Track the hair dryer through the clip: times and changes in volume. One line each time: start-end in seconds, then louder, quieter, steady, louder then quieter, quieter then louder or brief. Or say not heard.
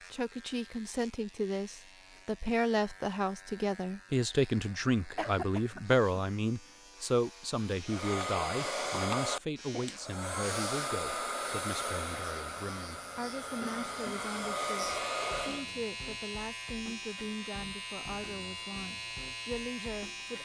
7.8-15.7 quieter then louder.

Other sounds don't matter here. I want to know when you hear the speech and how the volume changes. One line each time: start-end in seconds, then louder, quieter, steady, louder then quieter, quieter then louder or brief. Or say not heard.
0.1-20.4 quieter.